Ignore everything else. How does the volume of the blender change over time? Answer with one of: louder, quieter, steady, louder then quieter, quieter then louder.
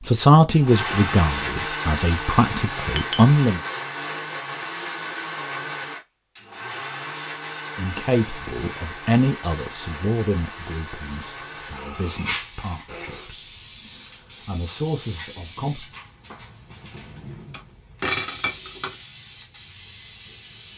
quieter.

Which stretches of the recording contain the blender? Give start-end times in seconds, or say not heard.
0.0-13.3.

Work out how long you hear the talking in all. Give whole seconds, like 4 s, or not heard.
12 s.